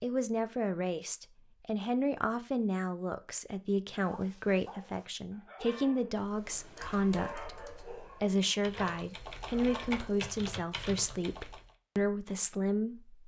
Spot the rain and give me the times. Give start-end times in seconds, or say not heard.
not heard.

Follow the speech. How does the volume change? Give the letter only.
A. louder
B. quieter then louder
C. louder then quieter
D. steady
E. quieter
D.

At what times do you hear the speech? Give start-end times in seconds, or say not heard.
0.0-13.2.